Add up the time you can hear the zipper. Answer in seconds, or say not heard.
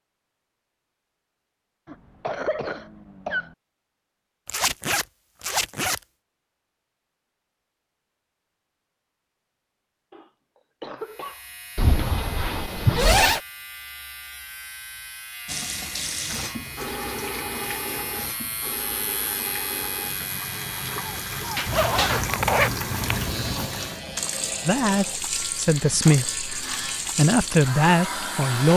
5 s.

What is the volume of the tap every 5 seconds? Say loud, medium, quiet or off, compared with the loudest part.
off, off, off, loud, loud, loud.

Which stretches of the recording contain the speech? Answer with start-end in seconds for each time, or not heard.
24.6-28.7.